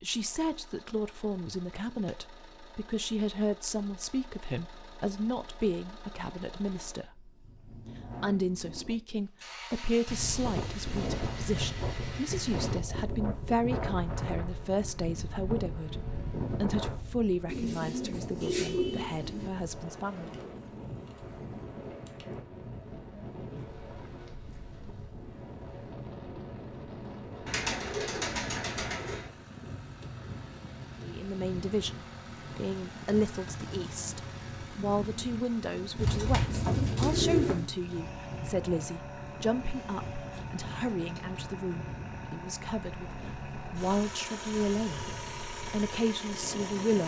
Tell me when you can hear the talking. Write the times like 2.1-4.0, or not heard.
0.0-7.3, 8.2-20.3, 31.0-45.1, 45.7-47.0.